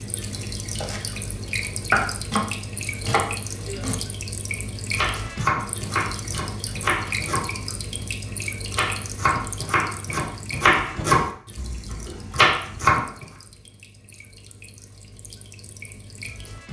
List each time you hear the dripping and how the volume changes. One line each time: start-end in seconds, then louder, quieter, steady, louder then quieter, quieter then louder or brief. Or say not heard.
0.0-16.6 quieter.